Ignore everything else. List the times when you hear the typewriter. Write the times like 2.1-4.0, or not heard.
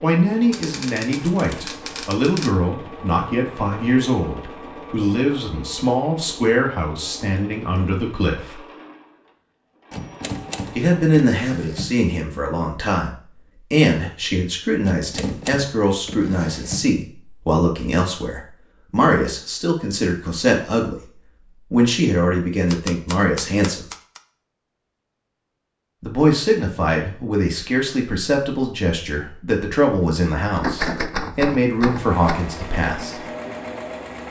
0.5-2.5, 9.9-11.9, 14.8-16.9, 22.6-24.2, 30.5-32.5.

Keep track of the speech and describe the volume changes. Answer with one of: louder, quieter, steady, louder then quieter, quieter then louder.
steady.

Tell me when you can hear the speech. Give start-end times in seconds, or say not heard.
0.0-8.6, 10.8-23.9, 26.0-33.2.